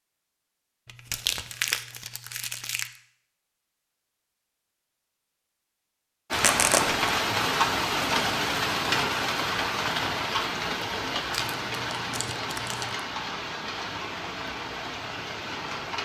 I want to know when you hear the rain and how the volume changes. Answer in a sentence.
You can hear the rain from 6.3 to 16.0 s, getting quieter.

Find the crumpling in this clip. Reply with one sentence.
You can hear the crumpling from 0.8 to 2.9 s, from 6.3 to 7.0 s and from 11.3 to 13.0 s.